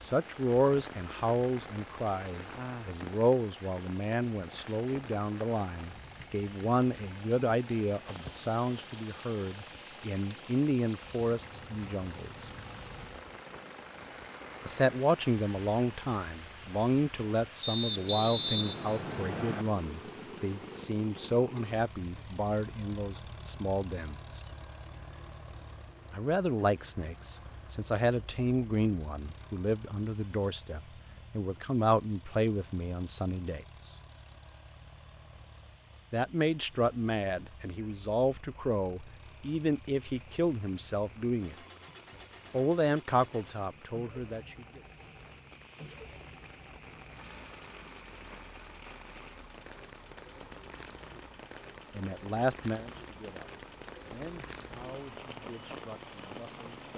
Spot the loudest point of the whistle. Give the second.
18 s.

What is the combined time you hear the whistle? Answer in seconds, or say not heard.
2 s.